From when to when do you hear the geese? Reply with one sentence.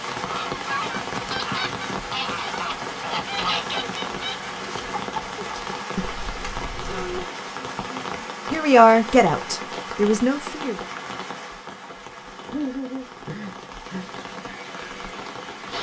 You can hear the geese from 0.2 to 7.2 s.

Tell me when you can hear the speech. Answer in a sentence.
The speech can be heard from 8.5 to 10.8 s.